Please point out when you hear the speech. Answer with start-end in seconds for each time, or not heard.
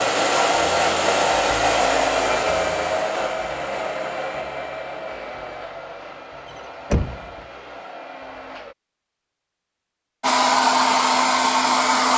not heard.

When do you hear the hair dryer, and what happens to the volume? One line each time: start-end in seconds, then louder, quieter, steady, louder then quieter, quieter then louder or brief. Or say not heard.
0.0-8.8 quieter
10.2-12.1 brief.